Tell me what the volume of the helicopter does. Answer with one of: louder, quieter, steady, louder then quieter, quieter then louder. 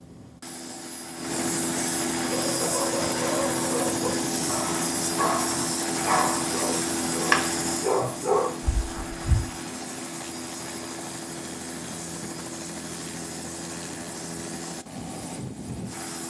quieter.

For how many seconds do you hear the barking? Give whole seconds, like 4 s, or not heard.
7 s.